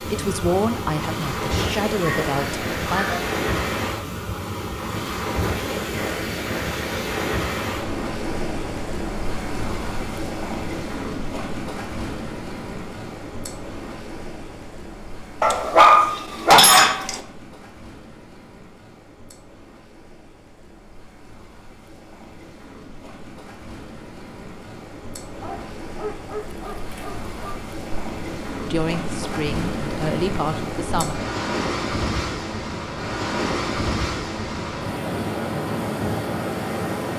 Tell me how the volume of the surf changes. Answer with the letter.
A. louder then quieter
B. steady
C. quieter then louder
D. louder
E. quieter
C.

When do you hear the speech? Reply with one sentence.
The speech can be heard from 0.0 to 3.0 s and from 28.7 to 31.1 s.